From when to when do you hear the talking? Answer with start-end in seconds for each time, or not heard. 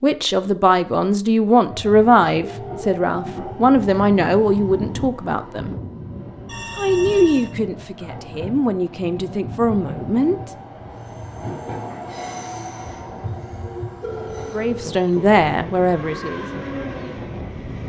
0.0-5.8, 6.8-10.4, 14.5-16.4.